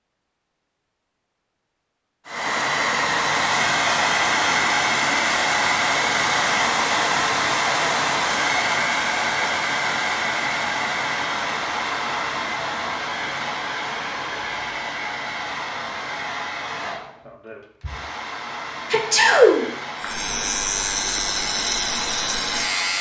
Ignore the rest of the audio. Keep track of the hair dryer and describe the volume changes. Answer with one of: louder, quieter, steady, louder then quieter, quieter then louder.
quieter.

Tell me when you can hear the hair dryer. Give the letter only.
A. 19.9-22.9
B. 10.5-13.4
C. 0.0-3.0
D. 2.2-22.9
D.